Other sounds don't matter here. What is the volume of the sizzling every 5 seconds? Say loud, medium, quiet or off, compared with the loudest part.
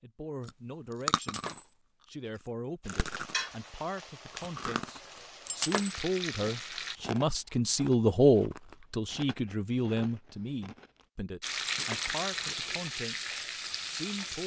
medium, medium, loud.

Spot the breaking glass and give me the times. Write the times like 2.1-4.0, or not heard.
1.1-1.7, 5.5-6.0, 11.7-12.2.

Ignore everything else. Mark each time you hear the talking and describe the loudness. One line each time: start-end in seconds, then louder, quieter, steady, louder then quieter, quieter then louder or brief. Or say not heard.
0.0-1.4 brief
2.0-14.4 louder then quieter.